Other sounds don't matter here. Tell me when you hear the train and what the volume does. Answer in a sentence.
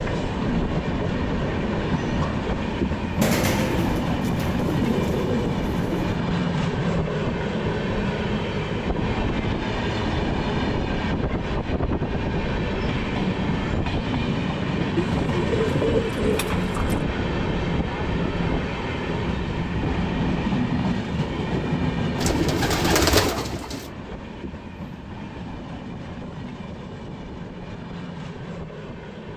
You can hear the train from 0.0 to 29.3 s, getting quieter.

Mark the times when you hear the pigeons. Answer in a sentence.
The pigeons can be heard from 3.2 to 6.2 s, from 14.9 to 17.0 s and from 22.1 to 23.9 s.